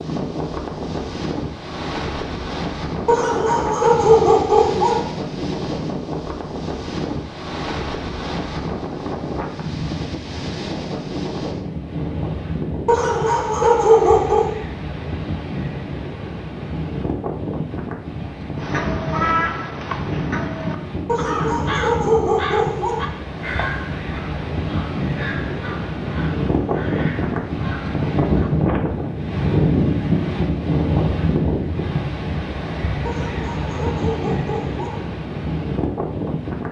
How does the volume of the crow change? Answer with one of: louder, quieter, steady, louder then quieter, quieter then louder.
quieter.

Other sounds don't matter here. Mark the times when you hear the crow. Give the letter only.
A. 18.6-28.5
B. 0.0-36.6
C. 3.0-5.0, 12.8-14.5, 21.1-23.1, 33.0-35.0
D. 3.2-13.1
A.